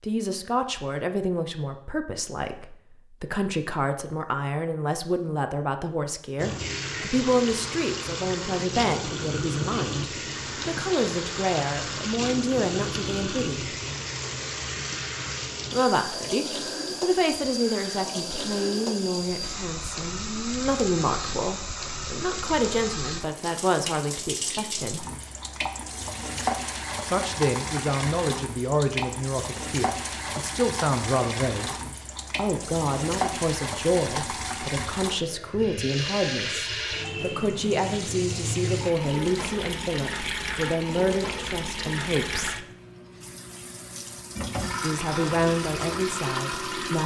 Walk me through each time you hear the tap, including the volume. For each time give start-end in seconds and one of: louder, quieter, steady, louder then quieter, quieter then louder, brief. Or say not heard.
6.3-47.0 steady.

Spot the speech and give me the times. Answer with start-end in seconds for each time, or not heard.
0.0-13.8, 15.7-25.1, 27.1-31.8, 32.4-42.6, 44.8-47.0.